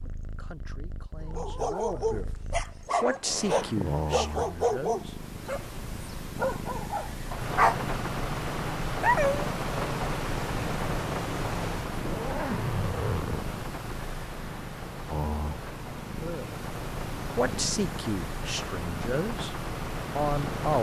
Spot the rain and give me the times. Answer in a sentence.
You can hear the rain from 7.2 to 20.7 s.